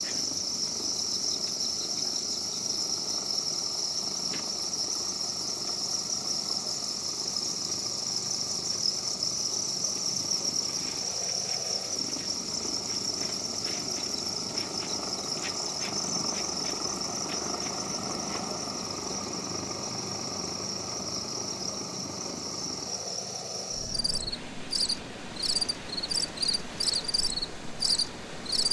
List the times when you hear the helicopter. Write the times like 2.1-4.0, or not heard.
0.0-28.6.